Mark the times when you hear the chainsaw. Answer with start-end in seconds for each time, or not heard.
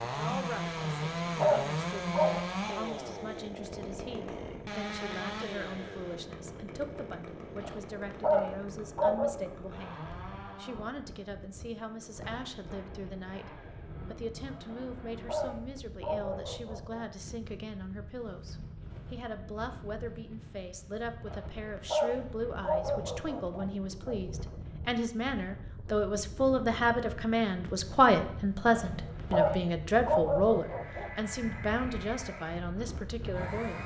0.0-15.7, 30.6-33.8.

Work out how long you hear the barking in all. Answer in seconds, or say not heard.
11 s.